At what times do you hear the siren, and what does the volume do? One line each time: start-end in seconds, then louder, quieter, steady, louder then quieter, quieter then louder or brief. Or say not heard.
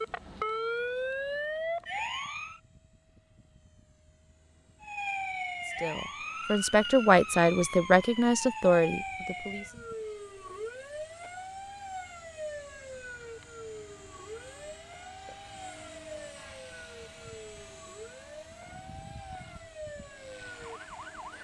0.0-2.6 brief
4.8-21.3 quieter.